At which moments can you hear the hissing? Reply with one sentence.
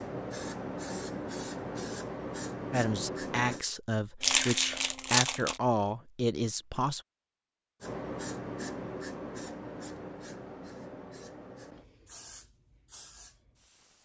The hissing can be heard from 0.0 to 3.6 s and from 7.8 to 14.0 s.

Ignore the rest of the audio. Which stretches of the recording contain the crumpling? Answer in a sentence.
You can hear the crumpling from 4.2 to 5.5 s.